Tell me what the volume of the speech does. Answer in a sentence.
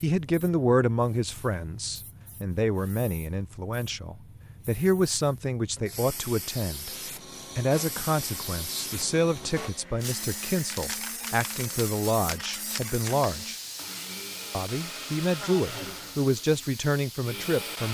The volume of the speech stays about the same.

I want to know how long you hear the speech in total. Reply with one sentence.
The speech can be heard for 16 seconds in total.